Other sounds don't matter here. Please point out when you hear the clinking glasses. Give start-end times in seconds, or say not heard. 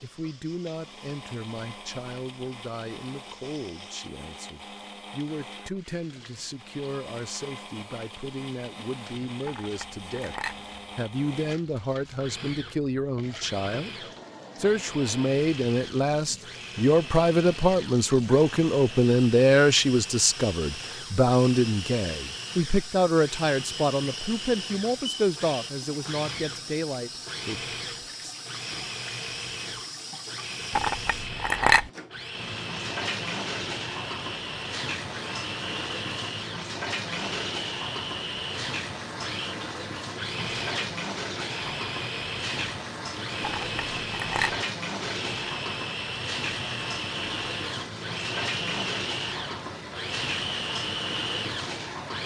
9.4-10.6, 30.8-31.9, 43.4-44.6.